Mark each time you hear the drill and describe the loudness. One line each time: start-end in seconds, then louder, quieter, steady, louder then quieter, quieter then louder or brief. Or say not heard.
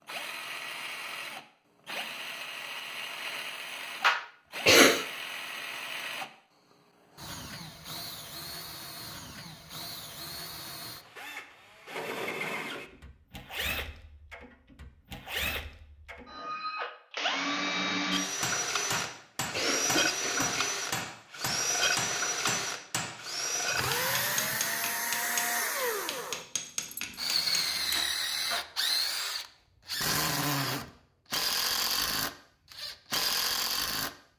0.1-34.1 louder.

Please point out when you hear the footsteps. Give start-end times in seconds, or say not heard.
not heard.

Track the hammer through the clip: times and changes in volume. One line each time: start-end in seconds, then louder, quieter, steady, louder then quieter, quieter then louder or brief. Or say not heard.
18.2-28.1 steady.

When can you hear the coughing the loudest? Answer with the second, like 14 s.
5 s.